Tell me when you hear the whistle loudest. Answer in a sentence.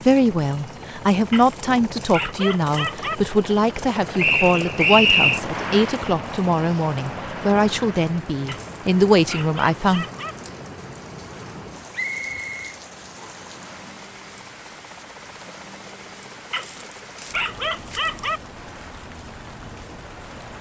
The loudest moment of the whistle is at 5 seconds.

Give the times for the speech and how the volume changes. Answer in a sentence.
You can hear the speech from 0.1 to 10.1 s, at a steady volume.